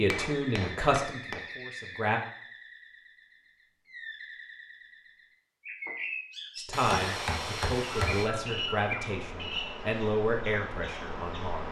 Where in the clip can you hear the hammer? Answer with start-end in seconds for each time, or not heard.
0.1-1.4, 6.7-8.3.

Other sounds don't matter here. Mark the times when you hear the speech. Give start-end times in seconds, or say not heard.
0.0-2.2, 6.5-11.6.